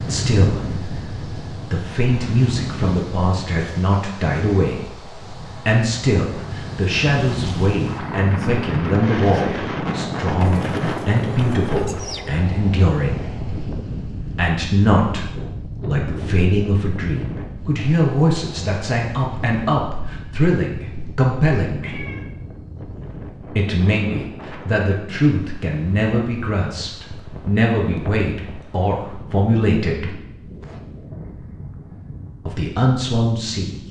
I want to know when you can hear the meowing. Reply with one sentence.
The meowing can be heard from 21.8 to 22.3 s.